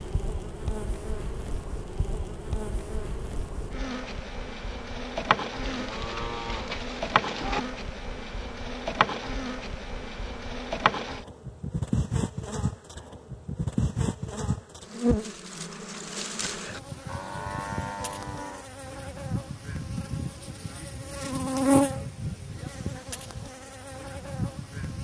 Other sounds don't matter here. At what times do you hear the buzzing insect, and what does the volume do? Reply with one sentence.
The buzzing insect can be heard from 0.0 to 24.9 s, getting louder.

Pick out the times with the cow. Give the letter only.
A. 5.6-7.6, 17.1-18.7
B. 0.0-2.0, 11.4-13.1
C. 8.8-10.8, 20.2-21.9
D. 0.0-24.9
A.